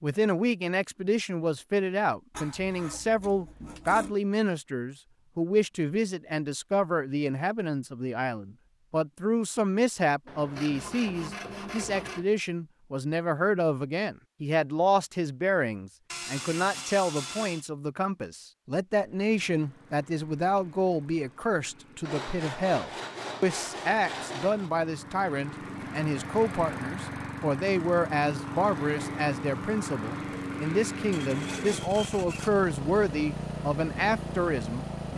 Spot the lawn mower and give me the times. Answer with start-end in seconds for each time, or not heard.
19.0-35.1.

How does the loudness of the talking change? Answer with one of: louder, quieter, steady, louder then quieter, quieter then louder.
steady.